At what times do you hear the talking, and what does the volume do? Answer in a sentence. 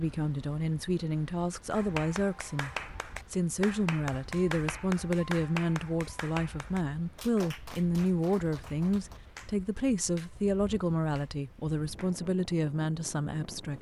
You can hear the talking from 0.0 to 13.7 s, at a steady volume.